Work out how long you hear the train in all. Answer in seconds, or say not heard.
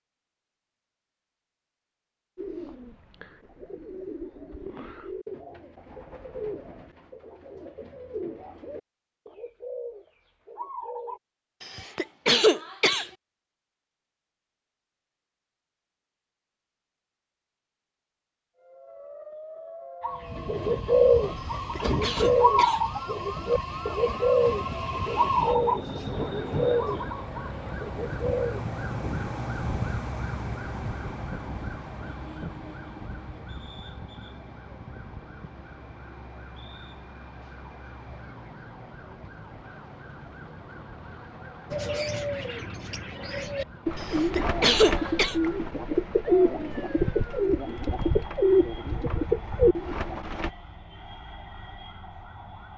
7 s.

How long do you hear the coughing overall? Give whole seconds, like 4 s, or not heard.
4 s.